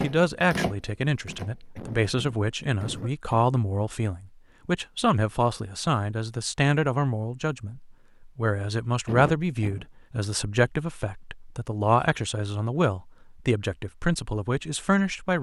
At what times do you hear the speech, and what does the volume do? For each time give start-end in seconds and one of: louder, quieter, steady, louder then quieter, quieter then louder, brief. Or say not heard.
0.0-15.3 steady.